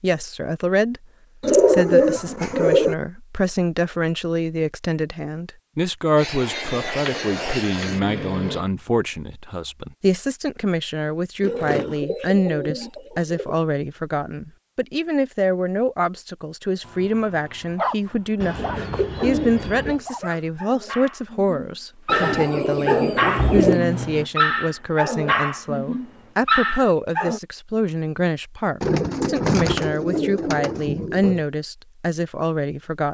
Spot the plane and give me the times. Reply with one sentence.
You can hear the plane from 6.2 to 8.7 s and from 23.1 to 26.4 s.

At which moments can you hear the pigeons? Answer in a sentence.
The pigeons can be heard from 1.4 to 3.0 s, from 6.7 to 8.1 s, from 11.4 to 13.6 s, from 18.4 to 20.0 s, from 22.1 to 23.8 s and from 28.8 to 31.4 s.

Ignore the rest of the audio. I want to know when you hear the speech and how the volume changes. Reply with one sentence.
The speech can be heard from 0.0 to 33.1 s, at a steady volume.